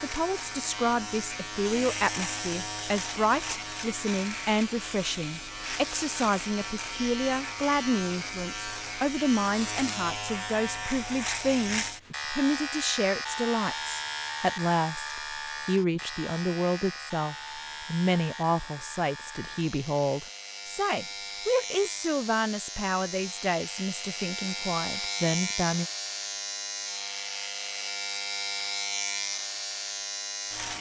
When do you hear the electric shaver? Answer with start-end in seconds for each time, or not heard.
0.0-30.7.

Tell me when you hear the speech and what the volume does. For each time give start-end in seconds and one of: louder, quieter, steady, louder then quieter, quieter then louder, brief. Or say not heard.
0.0-25.9 steady.